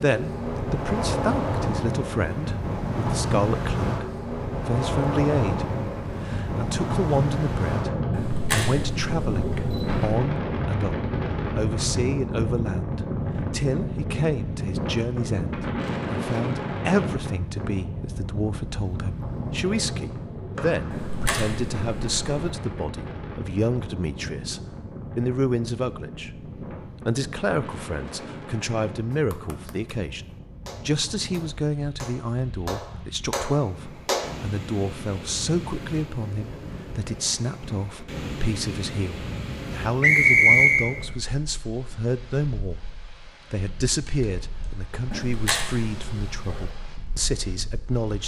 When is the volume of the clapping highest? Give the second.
34 s.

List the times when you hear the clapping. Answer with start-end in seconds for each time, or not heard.
29.1-34.4.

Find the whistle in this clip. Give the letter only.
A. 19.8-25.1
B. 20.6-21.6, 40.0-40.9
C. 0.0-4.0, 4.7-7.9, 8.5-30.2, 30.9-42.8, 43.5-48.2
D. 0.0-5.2
B.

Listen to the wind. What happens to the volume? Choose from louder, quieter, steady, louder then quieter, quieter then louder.
quieter.